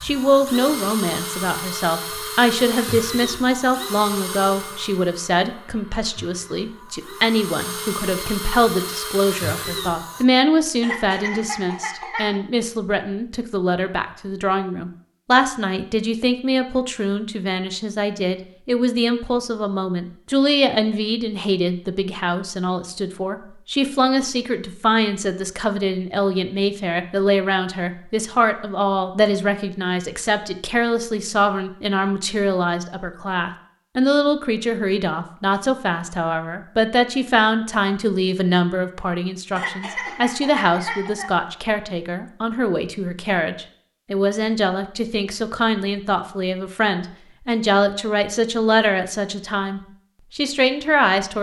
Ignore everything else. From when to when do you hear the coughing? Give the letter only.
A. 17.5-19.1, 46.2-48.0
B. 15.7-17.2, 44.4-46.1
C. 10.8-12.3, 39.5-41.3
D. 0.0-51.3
C.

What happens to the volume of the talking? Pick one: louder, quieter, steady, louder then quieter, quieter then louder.
steady.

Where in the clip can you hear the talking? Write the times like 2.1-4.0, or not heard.
0.0-51.3.